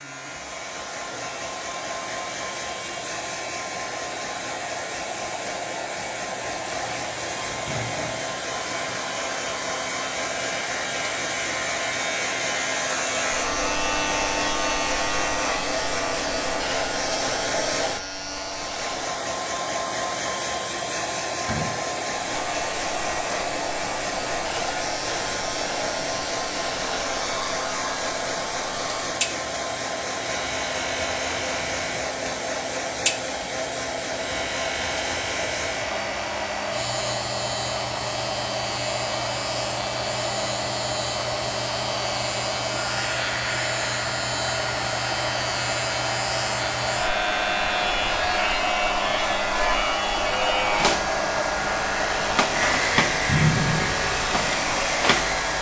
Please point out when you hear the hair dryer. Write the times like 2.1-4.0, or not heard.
0.0-55.5.